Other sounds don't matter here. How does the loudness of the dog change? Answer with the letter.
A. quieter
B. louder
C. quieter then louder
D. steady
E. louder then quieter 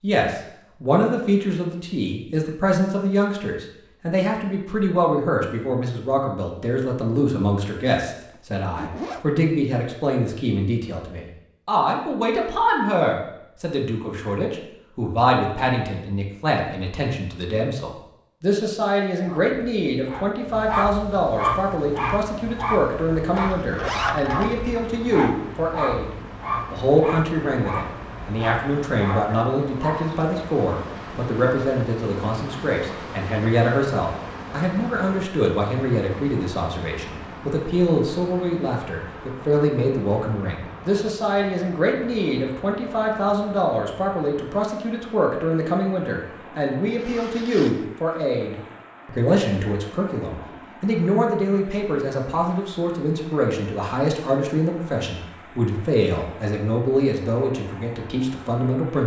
A.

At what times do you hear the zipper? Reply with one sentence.
The zipper can be heard from 8.3 to 9.2 s, from 23.4 to 24.6 s and from 47.0 to 47.9 s.